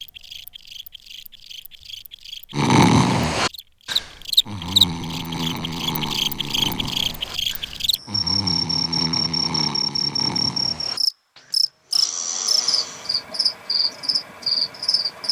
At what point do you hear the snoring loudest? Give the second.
3 s.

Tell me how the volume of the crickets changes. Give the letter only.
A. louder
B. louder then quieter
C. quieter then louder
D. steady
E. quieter
A.